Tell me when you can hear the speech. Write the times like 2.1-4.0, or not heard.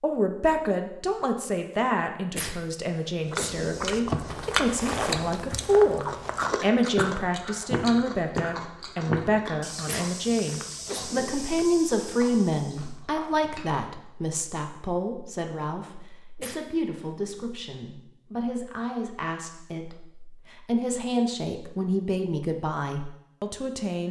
0.0-24.0.